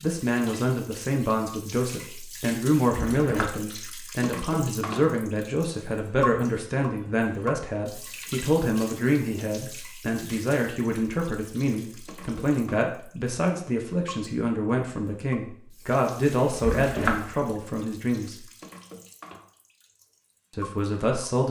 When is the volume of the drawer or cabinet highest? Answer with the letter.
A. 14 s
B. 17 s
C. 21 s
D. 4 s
B.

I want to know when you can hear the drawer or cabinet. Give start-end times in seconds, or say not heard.
2.9-3.6, 16.6-17.4.